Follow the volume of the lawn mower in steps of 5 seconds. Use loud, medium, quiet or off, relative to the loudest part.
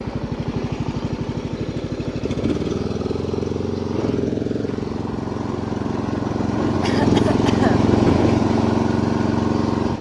medium, loud.